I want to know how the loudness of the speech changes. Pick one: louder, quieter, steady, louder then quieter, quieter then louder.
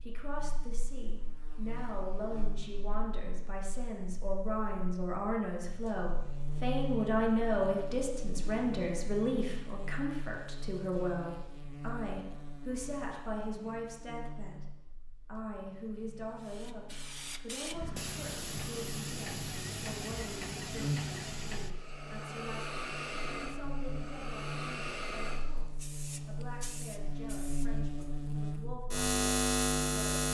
louder then quieter.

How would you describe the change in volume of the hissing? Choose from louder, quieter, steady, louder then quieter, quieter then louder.
quieter.